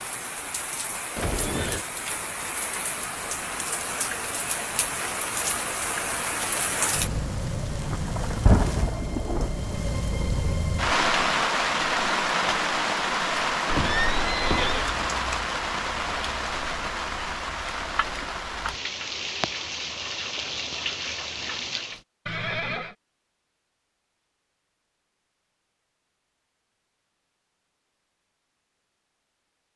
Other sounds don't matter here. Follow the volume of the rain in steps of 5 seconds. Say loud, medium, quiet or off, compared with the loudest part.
medium, loud, loud, medium, medium, off.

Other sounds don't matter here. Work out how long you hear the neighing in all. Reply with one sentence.
The neighing can be heard for 3 seconds in total.